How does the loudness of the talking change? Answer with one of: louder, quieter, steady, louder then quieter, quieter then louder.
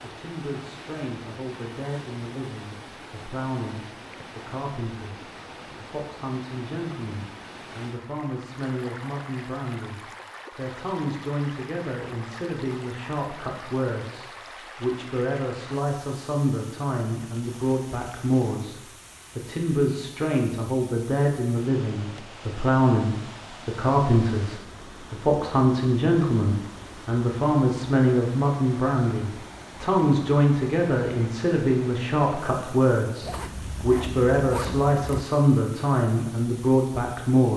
louder.